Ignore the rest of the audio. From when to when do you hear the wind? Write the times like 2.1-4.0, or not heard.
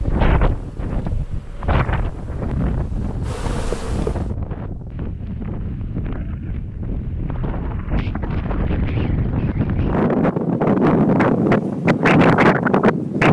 0.0-13.2.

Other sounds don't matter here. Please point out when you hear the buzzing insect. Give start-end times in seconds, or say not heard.
0.0-4.3.